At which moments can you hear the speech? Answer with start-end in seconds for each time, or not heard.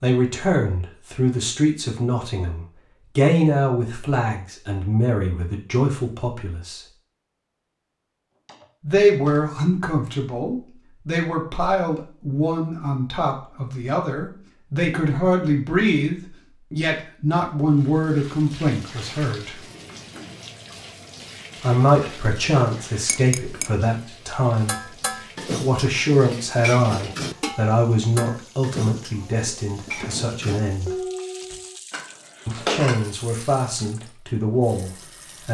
0.0-6.8, 8.8-19.6, 21.6-30.9, 32.5-35.4.